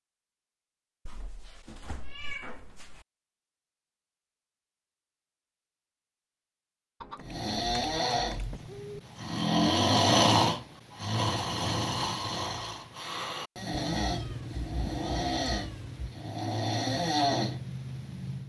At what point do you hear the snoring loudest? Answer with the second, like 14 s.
10 s.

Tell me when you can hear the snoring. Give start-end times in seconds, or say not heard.
7.2-18.4.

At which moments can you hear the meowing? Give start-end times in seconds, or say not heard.
1.1-3.0, 7.0-9.0, 13.7-16.1.